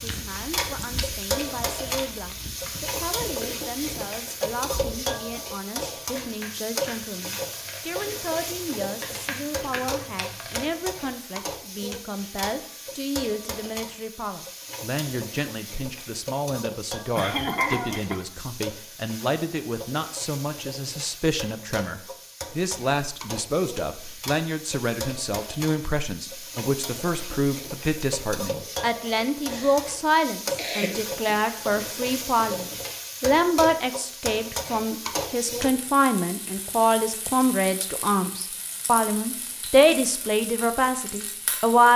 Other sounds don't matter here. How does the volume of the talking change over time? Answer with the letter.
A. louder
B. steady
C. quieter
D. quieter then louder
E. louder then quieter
A.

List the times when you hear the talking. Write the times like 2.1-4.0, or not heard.
0.0-41.9.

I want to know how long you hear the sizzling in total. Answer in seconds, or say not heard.
42 s.